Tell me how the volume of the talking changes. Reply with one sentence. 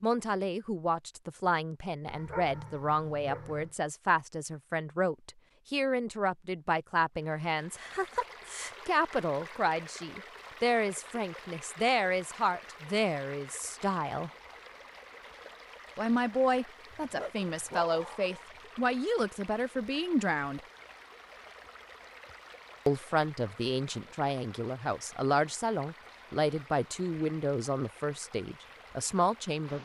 The volume of the talking stays about the same.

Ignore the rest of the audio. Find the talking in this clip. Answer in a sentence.
You can hear the talking from 0.0 to 14.3 s, from 15.9 to 20.6 s and from 22.9 to 29.7 s.